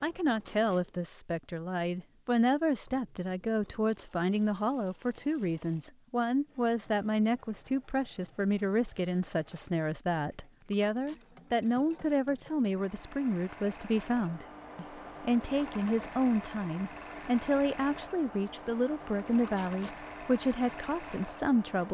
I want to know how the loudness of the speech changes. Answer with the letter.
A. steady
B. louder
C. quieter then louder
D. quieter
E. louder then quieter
A.